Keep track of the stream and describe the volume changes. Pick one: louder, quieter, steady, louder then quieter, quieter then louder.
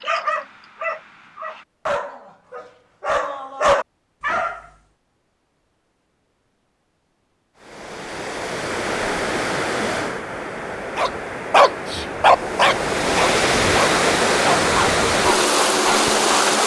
louder.